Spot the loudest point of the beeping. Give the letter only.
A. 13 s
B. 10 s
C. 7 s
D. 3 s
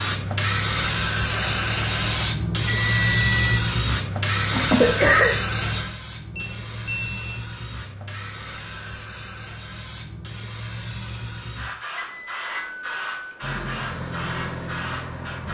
D.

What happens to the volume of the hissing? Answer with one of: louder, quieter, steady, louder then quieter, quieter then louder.
quieter.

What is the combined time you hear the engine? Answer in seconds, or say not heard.
2 s.